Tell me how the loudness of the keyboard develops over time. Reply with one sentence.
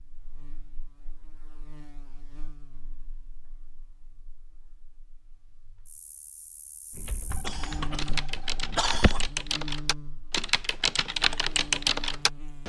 The volume of the keyboard goes up.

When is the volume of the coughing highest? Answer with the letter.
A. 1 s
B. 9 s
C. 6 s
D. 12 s
B.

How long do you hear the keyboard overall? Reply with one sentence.
The keyboard can be heard for 6 seconds in total.